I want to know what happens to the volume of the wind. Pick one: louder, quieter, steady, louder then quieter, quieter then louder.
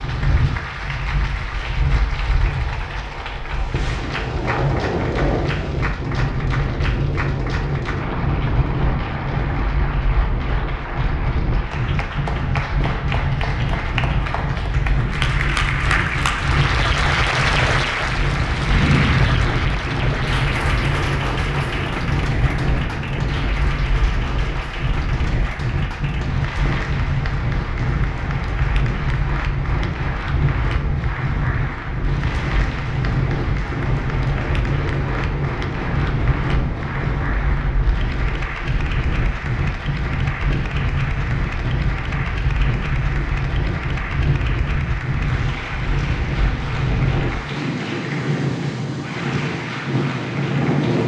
steady.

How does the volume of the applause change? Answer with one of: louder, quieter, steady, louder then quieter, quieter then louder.
louder then quieter.